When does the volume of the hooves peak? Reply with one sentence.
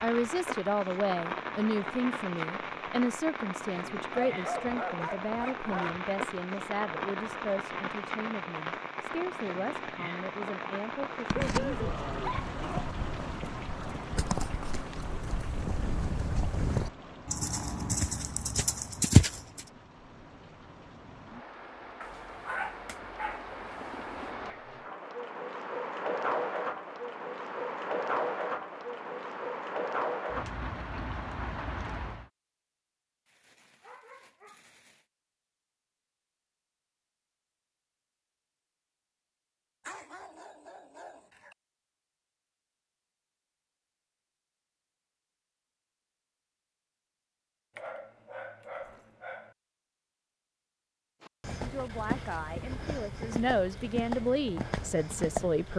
The loudest moment of the hooves is at 19 seconds.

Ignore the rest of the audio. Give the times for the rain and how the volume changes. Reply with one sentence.
You can hear the rain from 0.0 to 32.3 s, getting quieter then louder.